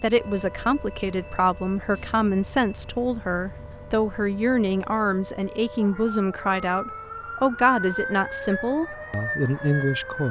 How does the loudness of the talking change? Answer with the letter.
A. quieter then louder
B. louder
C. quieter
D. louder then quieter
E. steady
E.